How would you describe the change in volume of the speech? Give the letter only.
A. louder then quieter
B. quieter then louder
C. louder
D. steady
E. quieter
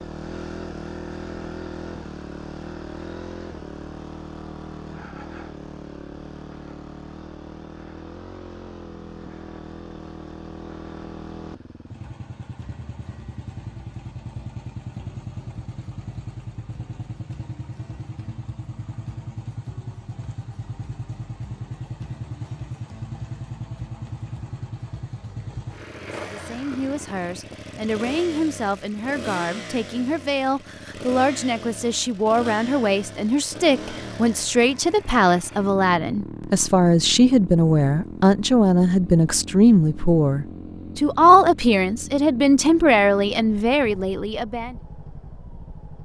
C.